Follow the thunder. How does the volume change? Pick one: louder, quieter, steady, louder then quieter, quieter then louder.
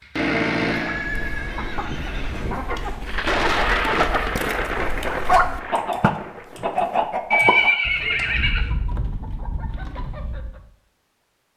quieter.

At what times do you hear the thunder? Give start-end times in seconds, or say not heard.
3.0-7.0.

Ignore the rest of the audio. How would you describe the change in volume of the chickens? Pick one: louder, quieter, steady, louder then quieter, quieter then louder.
louder then quieter.